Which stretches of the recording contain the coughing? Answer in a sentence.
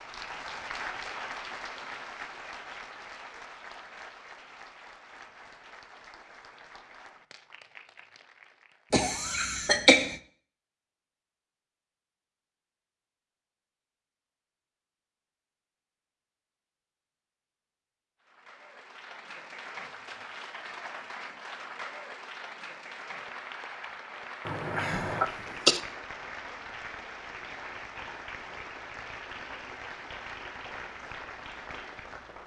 You can hear the coughing from 8.9 to 10.2 s and from 24.4 to 25.8 s.